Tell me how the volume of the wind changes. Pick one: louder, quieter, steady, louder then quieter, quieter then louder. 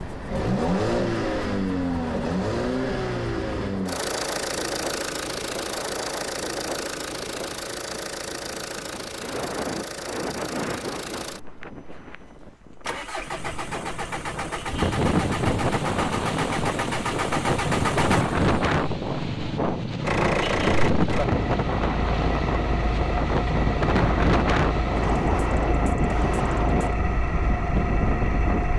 louder.